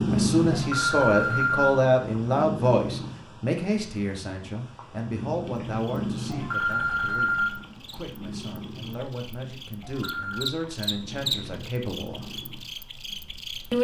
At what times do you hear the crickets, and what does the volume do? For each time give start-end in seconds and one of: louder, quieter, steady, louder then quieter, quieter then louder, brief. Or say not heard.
5.7-13.8 louder then quieter.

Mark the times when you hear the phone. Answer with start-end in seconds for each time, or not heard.
0.5-1.8, 6.3-7.6, 9.8-10.6.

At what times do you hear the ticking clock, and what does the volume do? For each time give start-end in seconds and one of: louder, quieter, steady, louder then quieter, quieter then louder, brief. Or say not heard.
not heard.